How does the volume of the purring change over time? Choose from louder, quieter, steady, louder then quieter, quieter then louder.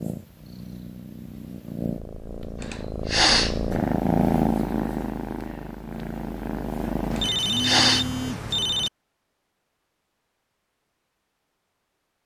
louder then quieter.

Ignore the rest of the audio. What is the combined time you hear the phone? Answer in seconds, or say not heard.
2 s.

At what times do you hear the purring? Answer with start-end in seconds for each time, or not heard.
0.0-7.3.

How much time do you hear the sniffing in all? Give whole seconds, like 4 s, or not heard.
2 s.